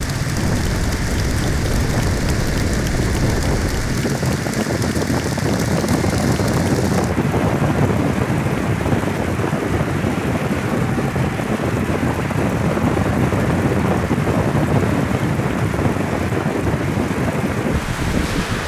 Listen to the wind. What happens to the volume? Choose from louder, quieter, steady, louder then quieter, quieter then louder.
steady.